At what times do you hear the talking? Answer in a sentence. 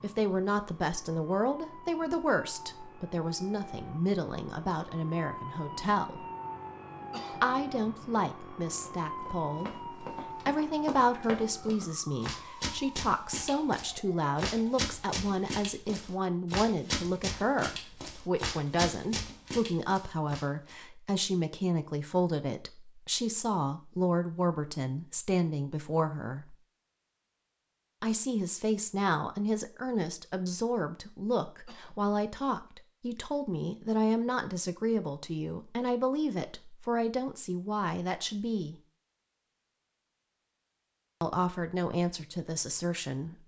The talking can be heard from 0.0 to 6.2 s, from 7.3 to 26.6 s, from 28.0 to 38.8 s and from 41.2 to 43.4 s.